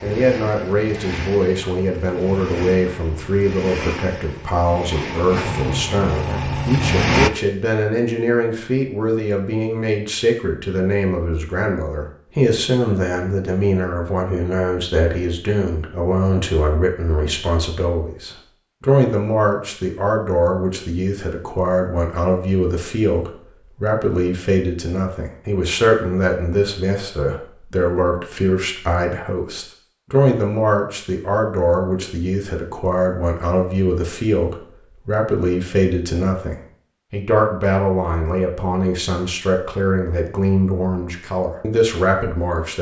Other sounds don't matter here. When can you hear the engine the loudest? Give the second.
7 s.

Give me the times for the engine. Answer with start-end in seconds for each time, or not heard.
0.0-7.3.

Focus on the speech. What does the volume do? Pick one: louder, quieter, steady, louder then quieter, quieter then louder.
steady.